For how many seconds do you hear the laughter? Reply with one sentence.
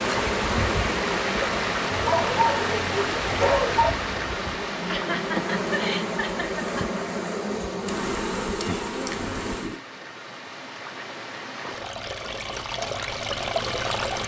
You can hear the laughter for 2 seconds altogether.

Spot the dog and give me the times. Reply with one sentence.
The dog can be heard from 1.9 to 3.9 s.